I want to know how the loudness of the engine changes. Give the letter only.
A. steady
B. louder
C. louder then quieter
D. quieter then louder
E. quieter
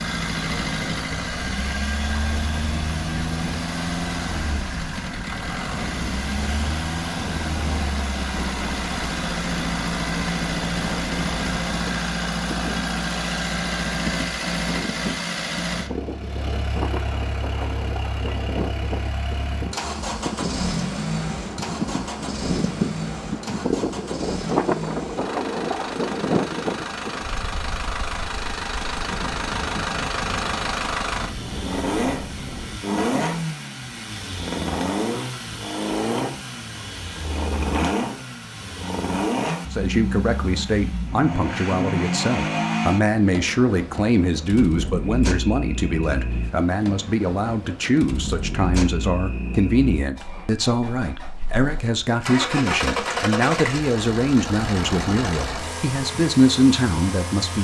A.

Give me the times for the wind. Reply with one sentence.
The wind can be heard from 0.0 to 32.8 s.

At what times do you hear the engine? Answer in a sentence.
You can hear the engine from 0.0 to 57.5 s.